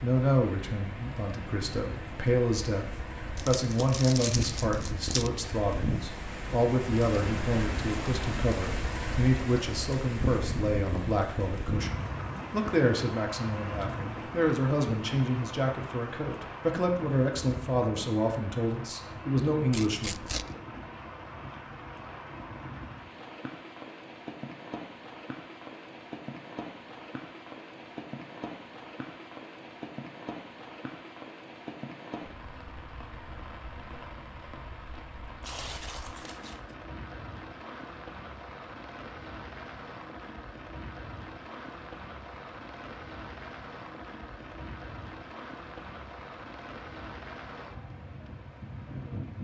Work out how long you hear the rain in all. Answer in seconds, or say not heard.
49 s.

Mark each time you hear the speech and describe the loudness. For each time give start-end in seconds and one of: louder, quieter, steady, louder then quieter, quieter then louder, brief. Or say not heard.
0.0-20.2 steady.